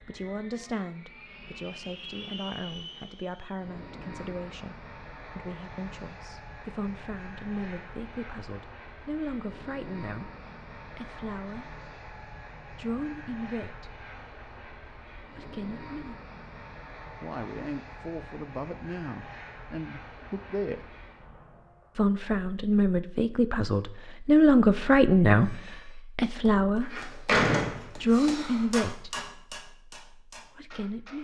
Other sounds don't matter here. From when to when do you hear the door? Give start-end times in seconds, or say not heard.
26.8-28.6.